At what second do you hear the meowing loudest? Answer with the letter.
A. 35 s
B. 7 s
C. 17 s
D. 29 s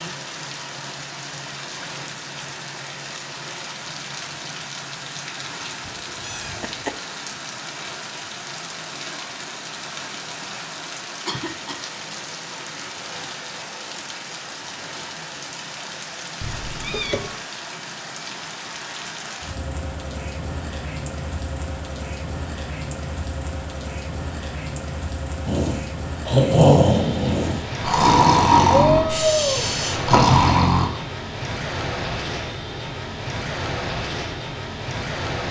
D.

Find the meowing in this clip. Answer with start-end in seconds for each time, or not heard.
5.8-6.9, 16.4-17.4, 28.8-29.6.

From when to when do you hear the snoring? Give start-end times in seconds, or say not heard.
25.4-30.9.